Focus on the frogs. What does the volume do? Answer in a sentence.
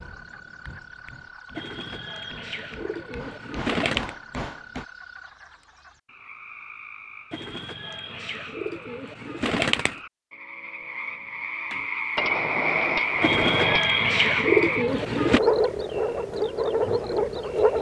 The volume of the frogs goes up.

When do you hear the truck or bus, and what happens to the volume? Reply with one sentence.
You can't hear the truck or bus here.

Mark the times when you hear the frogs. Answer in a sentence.
The frogs can be heard from 0.0 to 17.7 s.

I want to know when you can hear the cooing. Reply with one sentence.
The cooing can be heard from 1.6 to 4.1 s, from 7.3 to 9.9 s and from 13.2 to 15.4 s.